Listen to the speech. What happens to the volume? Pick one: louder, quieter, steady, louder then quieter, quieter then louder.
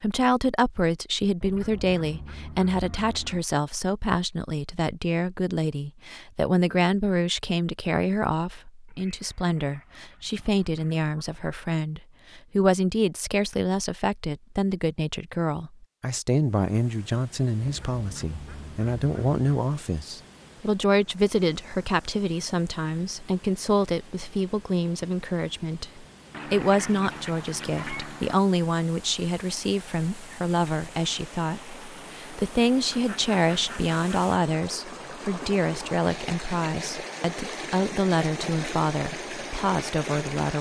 steady.